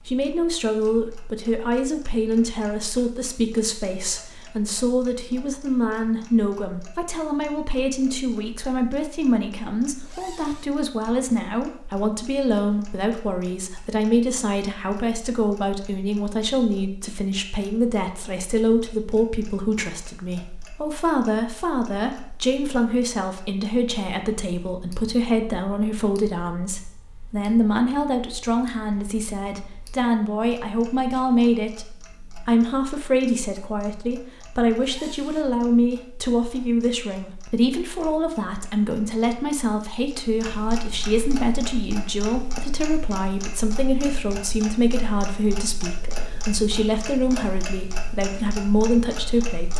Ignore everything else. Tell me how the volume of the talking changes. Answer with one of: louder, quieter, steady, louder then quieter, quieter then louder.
steady.